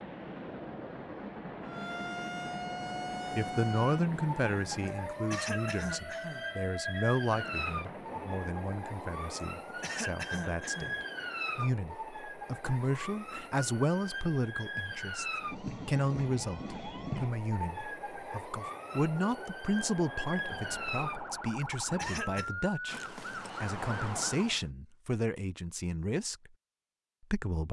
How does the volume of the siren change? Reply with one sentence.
The loudness of the siren stays about the same.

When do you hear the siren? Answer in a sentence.
You can hear the siren from 1.6 to 24.6 s.